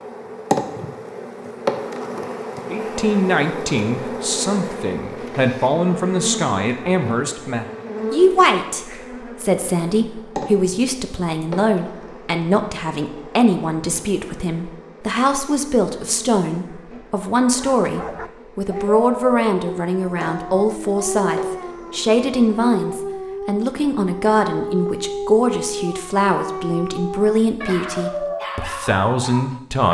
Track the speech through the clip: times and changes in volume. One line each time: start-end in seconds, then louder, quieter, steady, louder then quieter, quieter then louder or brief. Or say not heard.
2.7-29.9 steady.